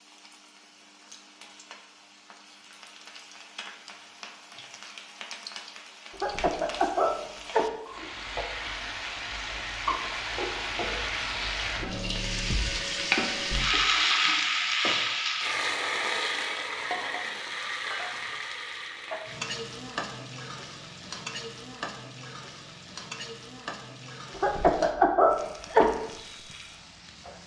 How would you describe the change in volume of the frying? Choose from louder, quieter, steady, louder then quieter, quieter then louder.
louder then quieter.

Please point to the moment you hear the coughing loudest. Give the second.
25 s.